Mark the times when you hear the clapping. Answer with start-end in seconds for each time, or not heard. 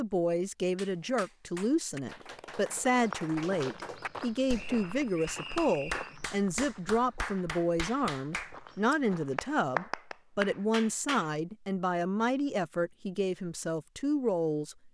0.8-11.3.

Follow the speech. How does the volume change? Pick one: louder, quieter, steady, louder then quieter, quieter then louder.
steady.